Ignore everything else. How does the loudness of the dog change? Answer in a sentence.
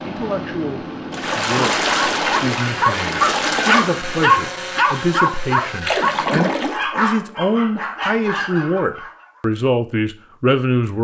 The loudness of the dog goes down.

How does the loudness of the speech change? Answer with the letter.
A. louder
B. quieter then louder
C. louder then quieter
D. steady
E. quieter
A.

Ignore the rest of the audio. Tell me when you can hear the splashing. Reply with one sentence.
You can hear the splashing from 1.1 to 3.9 s and from 5.8 to 6.8 s.